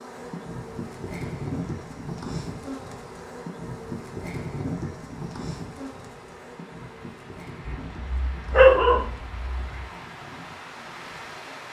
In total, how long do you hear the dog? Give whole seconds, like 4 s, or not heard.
2 s.